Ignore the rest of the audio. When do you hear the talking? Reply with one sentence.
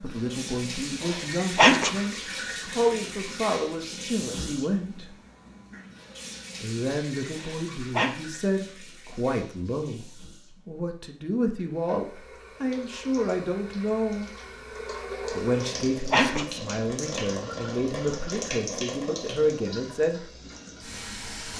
You can hear the talking from 0.0 to 5.0 s, from 6.6 to 14.3 s and from 15.3 to 20.2 s.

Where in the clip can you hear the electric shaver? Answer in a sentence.
You can't hear the electric shaver here.